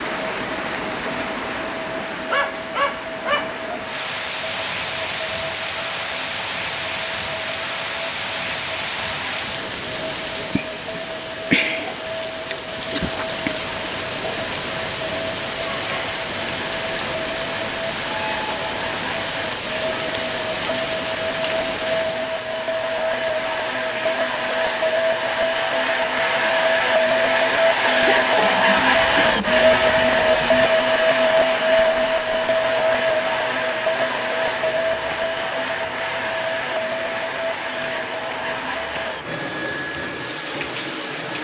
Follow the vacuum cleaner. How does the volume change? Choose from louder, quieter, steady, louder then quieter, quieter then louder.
louder then quieter.